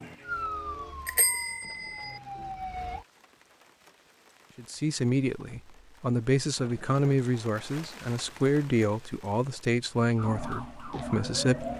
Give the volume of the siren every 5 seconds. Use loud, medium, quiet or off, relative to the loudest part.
loud, off, loud.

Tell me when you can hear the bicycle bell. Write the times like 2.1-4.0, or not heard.
1.1-2.2.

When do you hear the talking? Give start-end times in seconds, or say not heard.
4.5-11.7.